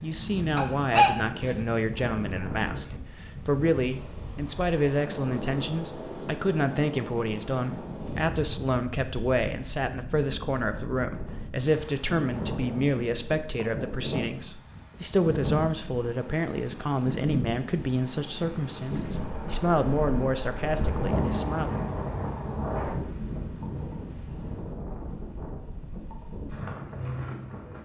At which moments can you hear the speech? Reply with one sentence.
The speech can be heard from 0.0 to 21.8 s.